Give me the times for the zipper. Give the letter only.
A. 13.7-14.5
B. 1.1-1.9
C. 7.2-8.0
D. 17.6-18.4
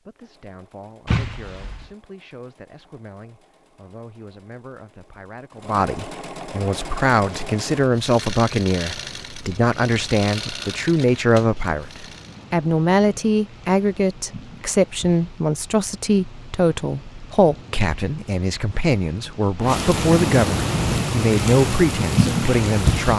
B.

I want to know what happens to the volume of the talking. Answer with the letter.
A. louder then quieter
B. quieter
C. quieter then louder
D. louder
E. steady
D.